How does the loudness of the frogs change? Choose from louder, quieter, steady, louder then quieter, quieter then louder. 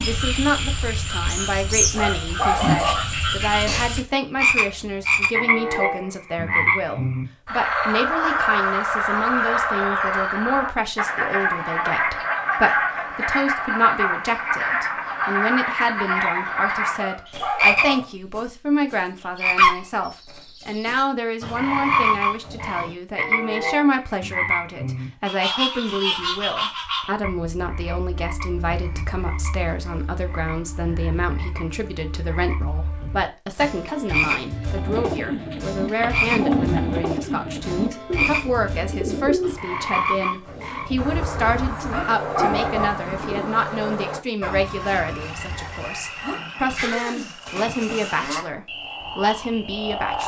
quieter.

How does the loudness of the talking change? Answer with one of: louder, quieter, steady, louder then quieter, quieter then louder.
steady.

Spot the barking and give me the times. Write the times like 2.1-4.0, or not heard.
1.9-3.1, 16.9-18.1, 41.9-43.0.